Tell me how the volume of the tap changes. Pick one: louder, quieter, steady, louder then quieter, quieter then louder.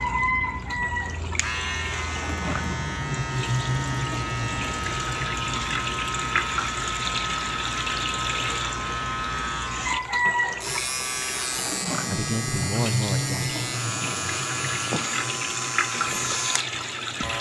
steady.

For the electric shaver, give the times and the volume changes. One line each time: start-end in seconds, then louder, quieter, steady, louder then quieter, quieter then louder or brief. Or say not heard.
0.0-17.3 steady.